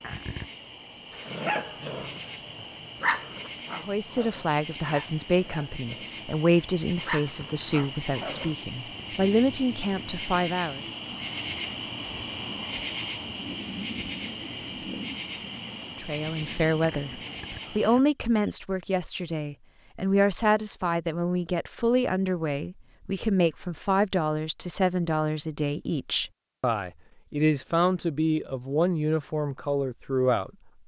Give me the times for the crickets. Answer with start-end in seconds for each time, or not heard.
0.0-18.6.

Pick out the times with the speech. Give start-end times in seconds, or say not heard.
3.8-10.8, 15.9-30.5.